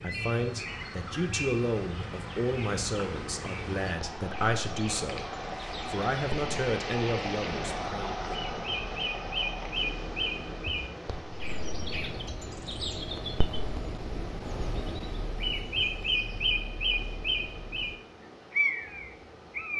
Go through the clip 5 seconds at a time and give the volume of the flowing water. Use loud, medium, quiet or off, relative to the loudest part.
medium, loud, medium, quiet.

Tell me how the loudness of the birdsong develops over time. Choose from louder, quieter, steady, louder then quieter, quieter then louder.
louder.